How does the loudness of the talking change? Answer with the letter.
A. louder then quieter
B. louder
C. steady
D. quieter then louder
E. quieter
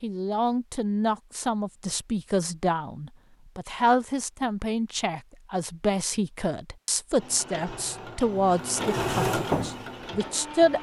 C.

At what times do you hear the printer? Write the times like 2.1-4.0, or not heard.
7.2-10.7.